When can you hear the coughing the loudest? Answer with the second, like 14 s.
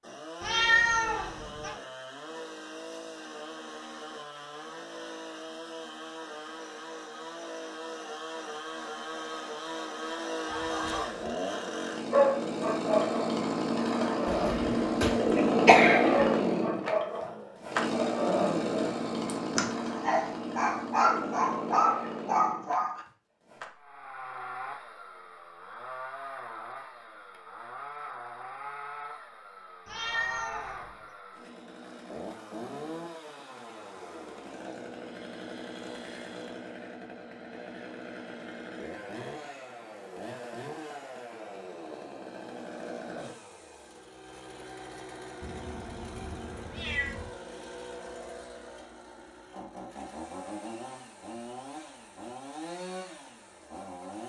16 s.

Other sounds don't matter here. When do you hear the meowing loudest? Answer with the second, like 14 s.
1 s.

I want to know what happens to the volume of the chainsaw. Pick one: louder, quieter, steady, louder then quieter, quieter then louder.
louder then quieter.